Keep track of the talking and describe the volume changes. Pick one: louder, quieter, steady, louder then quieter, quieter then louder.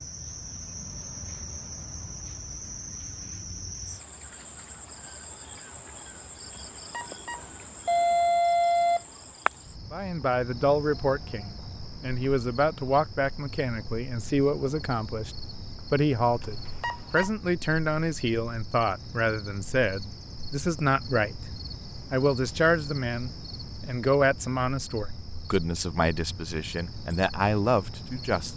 steady.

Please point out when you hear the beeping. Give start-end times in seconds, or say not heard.
6.9-9.0, 16.4-17.3.